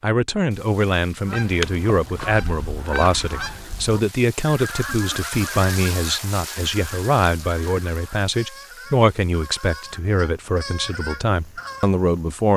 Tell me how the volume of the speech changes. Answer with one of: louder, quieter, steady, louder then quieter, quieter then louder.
steady.